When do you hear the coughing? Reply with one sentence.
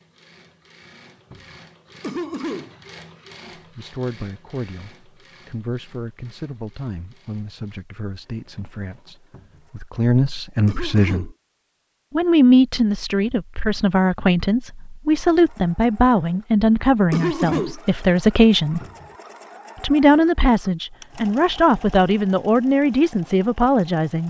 The coughing can be heard from 2.0 to 2.7 s, from 10.7 to 11.3 s and from 17.1 to 17.8 s.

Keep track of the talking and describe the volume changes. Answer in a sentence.
The volume of the talking goes up.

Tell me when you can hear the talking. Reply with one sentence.
The talking can be heard from 3.5 to 11.3 s, from 12.1 to 18.8 s and from 19.8 to 24.2 s.